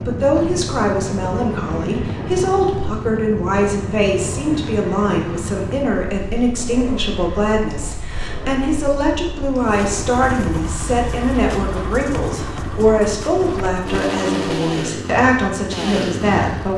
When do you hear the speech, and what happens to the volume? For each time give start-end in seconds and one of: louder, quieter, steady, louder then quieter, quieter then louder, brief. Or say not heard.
0.1-16.7 steady.